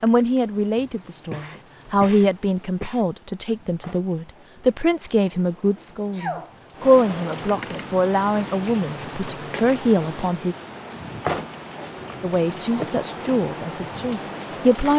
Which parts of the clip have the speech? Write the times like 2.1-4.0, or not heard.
0.0-10.6, 12.2-14.9.